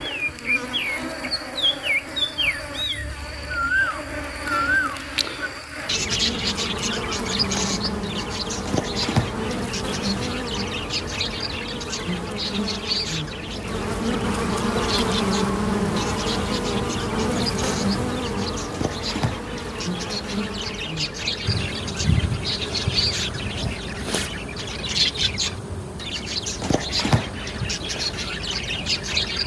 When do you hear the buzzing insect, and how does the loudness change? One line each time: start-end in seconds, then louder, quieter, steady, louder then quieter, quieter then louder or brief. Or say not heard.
0.0-29.4 louder then quieter.